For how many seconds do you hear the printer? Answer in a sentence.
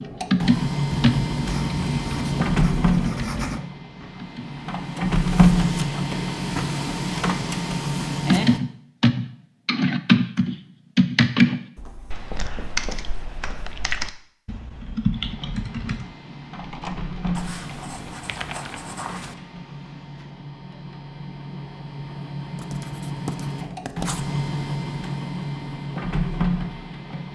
The printer can be heard for 21 seconds in total.